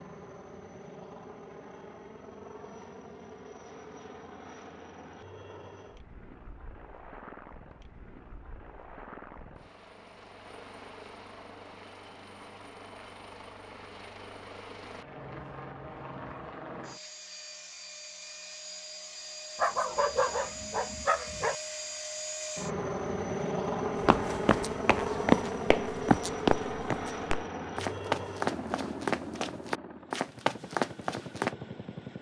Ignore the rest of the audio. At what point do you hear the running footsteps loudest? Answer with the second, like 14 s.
25 s.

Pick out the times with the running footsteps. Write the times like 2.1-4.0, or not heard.
24.0-31.6.